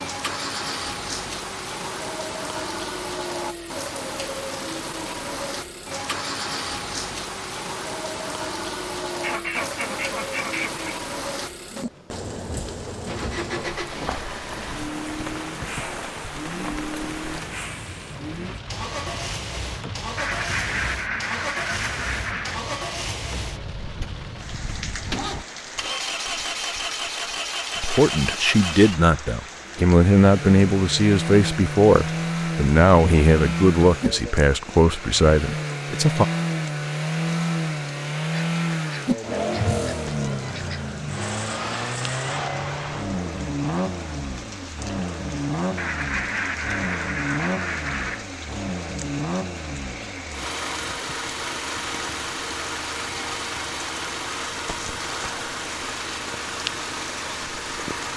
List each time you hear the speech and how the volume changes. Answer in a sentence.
You can hear the speech from 27.8 to 36.2 s, at a steady volume.